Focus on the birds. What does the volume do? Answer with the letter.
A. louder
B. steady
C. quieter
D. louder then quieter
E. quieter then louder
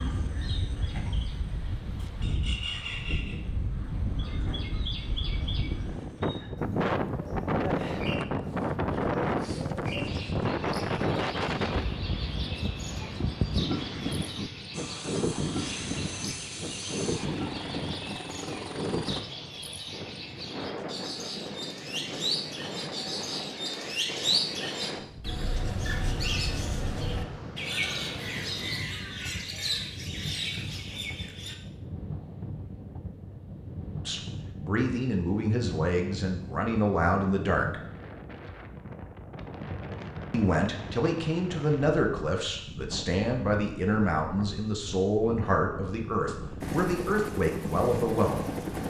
A.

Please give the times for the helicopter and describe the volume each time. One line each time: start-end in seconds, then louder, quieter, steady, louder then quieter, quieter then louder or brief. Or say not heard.
14.7-19.2 steady
46.6-48.8 brief.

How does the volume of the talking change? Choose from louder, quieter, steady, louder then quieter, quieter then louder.
steady.